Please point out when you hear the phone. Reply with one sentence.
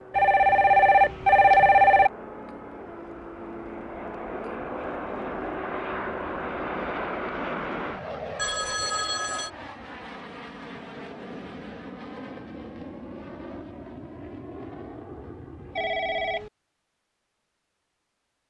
You can hear the phone from 0.1 to 2.1 s, from 8.3 to 9.5 s and from 15.8 to 16.5 s.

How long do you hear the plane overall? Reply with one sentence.
The plane can be heard for 16 seconds in total.